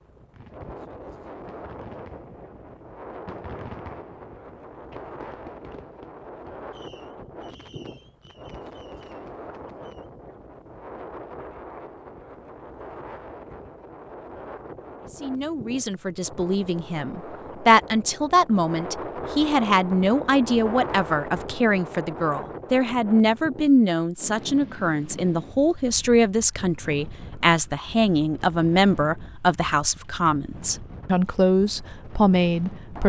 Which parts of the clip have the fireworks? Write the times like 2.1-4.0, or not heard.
0.3-10.1.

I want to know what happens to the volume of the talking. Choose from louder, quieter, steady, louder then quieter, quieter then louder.
steady.